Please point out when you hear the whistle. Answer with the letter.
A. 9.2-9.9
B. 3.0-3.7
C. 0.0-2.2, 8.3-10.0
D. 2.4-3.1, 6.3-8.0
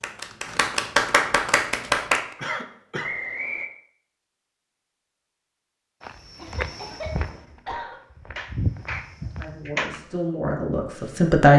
B.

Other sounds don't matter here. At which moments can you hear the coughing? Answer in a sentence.
You can hear the coughing from 2.4 to 3.1 s and from 6.3 to 8.0 s.